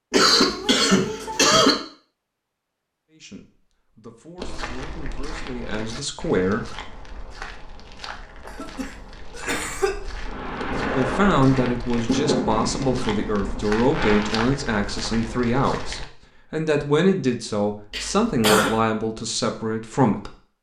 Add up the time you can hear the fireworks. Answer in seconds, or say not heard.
4 s.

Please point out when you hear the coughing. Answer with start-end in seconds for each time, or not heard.
0.1-1.8, 8.6-9.9, 17.9-18.8.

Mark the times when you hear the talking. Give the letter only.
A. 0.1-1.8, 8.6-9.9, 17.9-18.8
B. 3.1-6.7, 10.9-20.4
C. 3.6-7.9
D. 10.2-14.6
B.